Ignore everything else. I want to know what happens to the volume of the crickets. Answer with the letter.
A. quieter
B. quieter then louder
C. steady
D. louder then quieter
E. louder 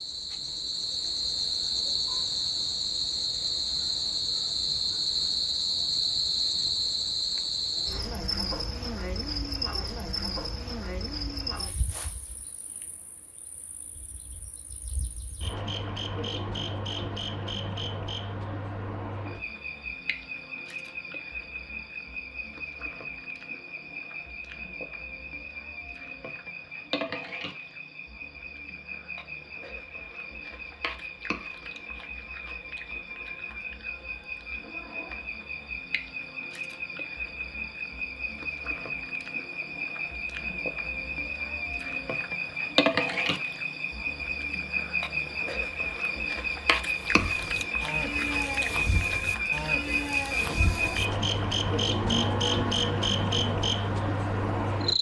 B.